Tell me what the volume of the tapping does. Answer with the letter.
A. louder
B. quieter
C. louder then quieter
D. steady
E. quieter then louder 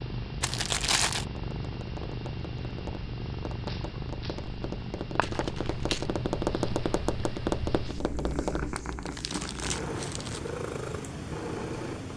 A.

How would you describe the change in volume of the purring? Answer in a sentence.
The loudness of the purring stays about the same.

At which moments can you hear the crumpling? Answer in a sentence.
You can hear the crumpling from 0.4 to 1.2 s, from 5.2 to 6.0 s and from 8.8 to 10.5 s.